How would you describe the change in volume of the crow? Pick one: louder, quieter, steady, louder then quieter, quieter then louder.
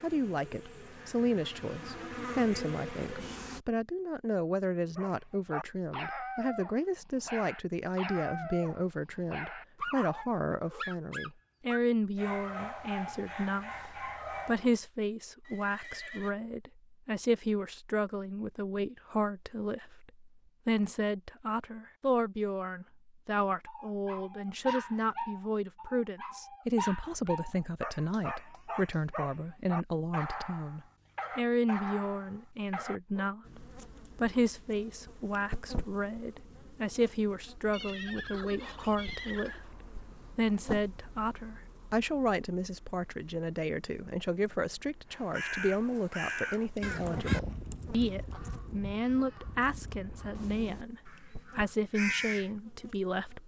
quieter then louder.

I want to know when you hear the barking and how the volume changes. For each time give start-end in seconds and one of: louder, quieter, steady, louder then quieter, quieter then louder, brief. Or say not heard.
5.0-14.7 steady
23.6-33.3 steady.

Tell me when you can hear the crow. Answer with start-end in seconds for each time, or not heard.
45.1-52.5.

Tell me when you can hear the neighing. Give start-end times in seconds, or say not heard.
15.4-16.4, 37.7-39.6.